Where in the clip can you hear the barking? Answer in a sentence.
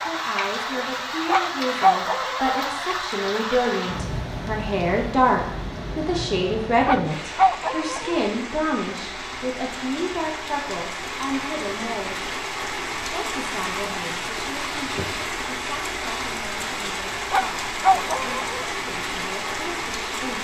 You can hear the barking from 1.2 to 2.5 s, from 6.8 to 8.2 s and from 17.3 to 18.8 s.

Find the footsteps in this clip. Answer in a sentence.
You can't hear the footsteps here.